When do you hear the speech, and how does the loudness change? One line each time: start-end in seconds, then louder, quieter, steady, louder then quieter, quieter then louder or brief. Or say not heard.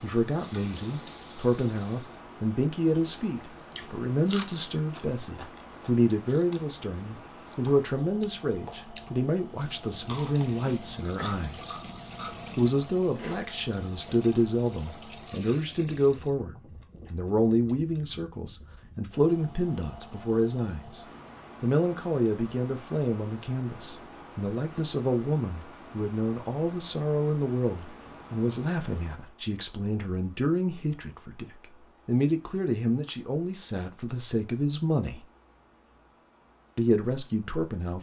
0.0-11.8 steady
12.6-35.2 steady
36.8-37.9 brief.